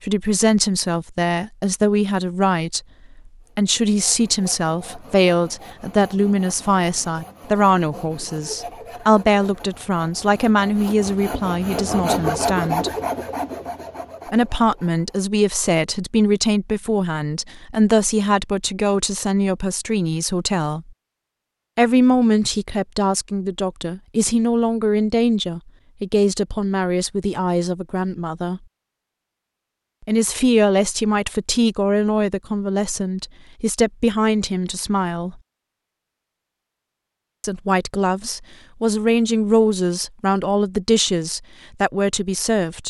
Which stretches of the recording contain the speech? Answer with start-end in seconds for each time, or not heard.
0.0-12.9, 14.3-20.9, 21.8-28.6, 30.1-35.4, 37.4-42.8.